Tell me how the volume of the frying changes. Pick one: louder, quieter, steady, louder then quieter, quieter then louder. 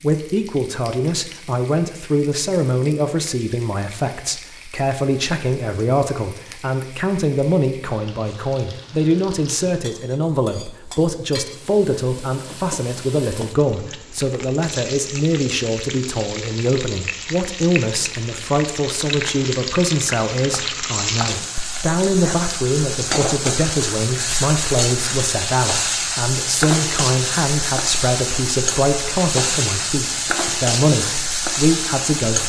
louder.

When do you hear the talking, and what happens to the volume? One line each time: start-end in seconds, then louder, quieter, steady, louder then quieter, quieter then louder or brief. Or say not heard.
0.0-32.4 steady.